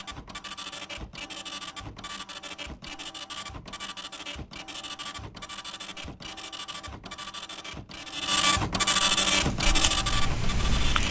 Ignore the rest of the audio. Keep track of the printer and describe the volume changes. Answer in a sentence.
The loudness of the printer goes up.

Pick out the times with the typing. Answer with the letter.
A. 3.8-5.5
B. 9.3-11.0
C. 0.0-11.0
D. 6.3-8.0
B.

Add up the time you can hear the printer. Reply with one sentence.
The printer can be heard for 11 seconds in total.